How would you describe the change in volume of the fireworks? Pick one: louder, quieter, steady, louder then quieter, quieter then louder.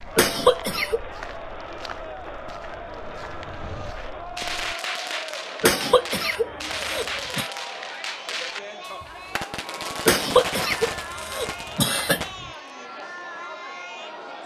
steady.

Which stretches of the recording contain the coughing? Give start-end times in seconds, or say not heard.
0.1-1.0, 5.6-7.5, 10.1-12.5.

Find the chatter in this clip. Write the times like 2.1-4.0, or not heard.
0.0-14.4.